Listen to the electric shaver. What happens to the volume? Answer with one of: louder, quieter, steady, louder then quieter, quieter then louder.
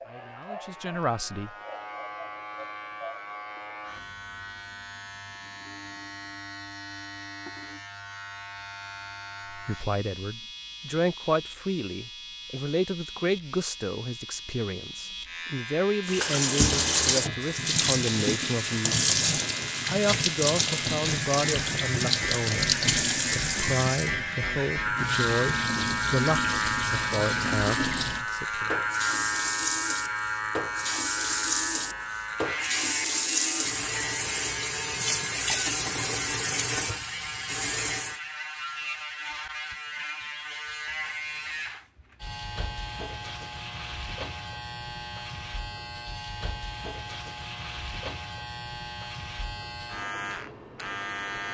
louder then quieter.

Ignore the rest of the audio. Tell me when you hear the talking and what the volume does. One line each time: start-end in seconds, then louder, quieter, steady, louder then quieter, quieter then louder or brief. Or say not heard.
0.0-1.5 brief
9.5-28.7 steady.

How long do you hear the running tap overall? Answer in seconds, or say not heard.
22 s.